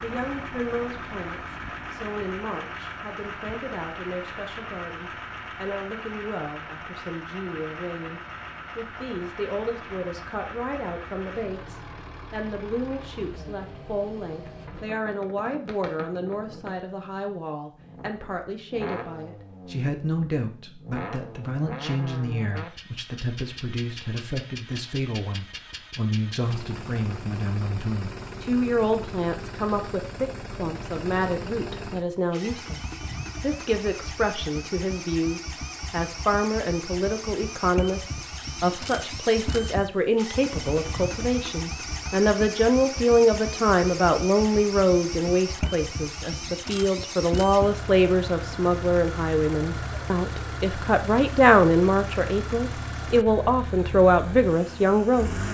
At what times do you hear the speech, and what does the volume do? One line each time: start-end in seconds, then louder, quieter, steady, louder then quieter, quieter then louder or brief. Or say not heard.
0.0-55.4 louder.